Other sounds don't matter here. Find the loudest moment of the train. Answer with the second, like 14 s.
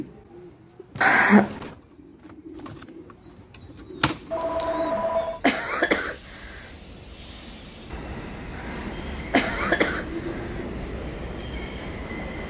10 s.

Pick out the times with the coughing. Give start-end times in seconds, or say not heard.
1.0-1.7, 4.7-6.6, 8.6-10.5.